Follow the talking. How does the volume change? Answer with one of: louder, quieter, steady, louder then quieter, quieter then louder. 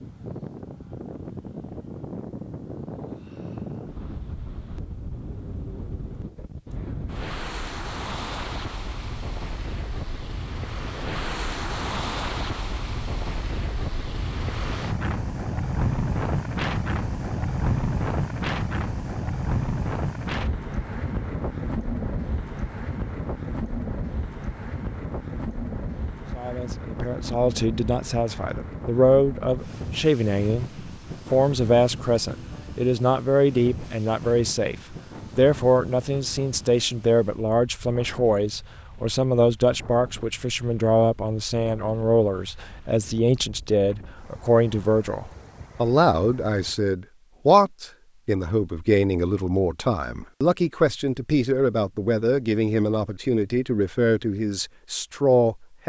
steady.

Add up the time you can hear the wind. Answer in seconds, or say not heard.
47 s.